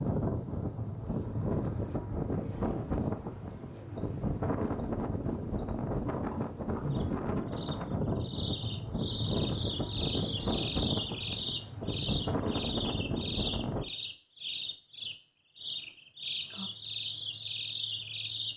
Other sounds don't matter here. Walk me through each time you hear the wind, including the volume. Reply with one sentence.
The wind can be heard from 0.0 to 13.8 s, at a steady volume.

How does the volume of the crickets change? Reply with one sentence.
The loudness of the crickets stays about the same.